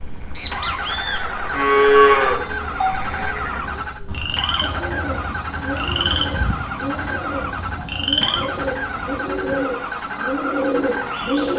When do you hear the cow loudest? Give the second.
2 s.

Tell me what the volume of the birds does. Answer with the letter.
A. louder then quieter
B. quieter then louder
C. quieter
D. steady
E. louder
B.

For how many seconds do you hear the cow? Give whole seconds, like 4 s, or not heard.
2 s.